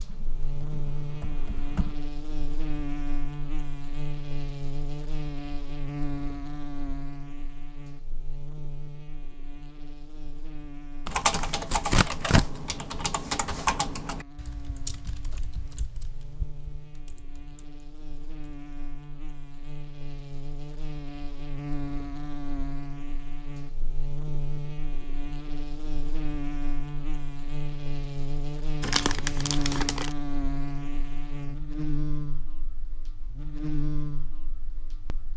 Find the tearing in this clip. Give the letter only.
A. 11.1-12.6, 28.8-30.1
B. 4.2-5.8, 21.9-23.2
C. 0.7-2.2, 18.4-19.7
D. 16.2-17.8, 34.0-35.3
A.